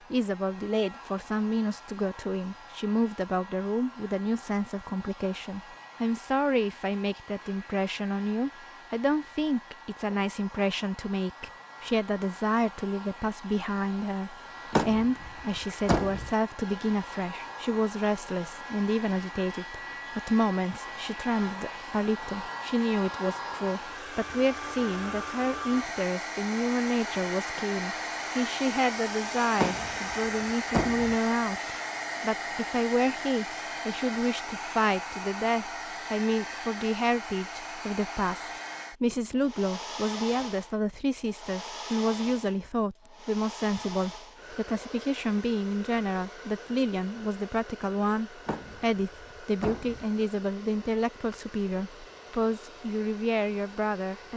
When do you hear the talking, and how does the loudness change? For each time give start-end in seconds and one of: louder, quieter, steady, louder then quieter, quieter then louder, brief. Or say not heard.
0.1-54.3 steady.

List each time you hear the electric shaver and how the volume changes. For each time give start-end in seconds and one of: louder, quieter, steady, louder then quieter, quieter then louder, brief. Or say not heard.
not heard.